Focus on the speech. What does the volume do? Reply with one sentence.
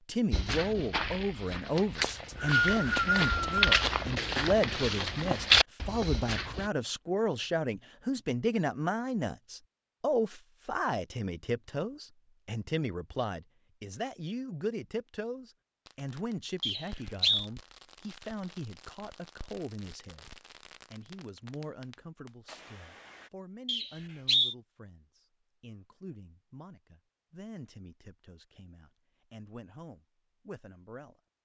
The loudness of the speech goes down.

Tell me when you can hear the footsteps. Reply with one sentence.
The footsteps can be heard from 0.3 to 6.7 s.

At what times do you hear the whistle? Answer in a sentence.
You can hear the whistle from 2.0 to 3.6 s, from 16.6 to 17.5 s and from 23.6 to 24.6 s.